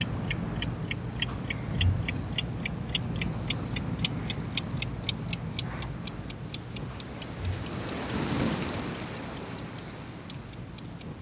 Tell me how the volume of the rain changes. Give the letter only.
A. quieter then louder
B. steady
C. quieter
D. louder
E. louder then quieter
E.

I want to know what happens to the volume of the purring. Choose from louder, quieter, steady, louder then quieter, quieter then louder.
quieter.